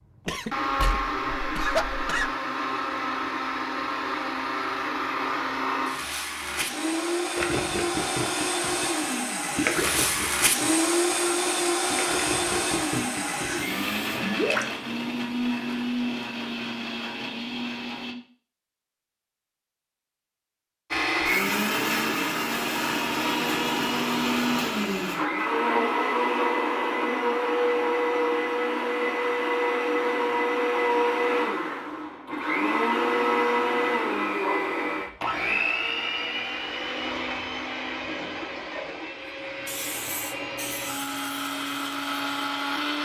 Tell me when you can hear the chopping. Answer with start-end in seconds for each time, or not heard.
not heard.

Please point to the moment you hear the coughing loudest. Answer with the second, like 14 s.
2 s.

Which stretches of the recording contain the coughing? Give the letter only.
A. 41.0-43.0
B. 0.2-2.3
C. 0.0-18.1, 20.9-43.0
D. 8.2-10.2
B.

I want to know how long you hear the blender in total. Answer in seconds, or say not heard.
40 s.